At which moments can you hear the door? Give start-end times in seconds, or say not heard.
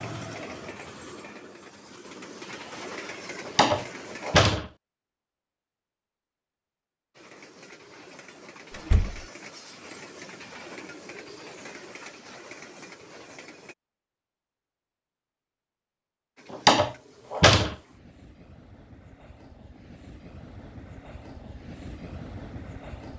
3.5-4.7, 8.7-9.2, 16.6-17.8.